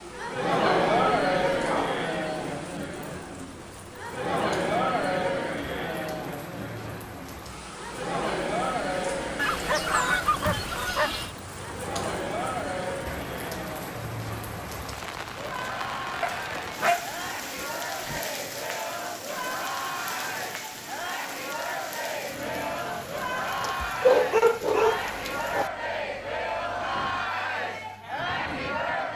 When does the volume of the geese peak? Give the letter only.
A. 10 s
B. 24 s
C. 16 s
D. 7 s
A.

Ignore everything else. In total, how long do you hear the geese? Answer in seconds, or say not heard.
2 s.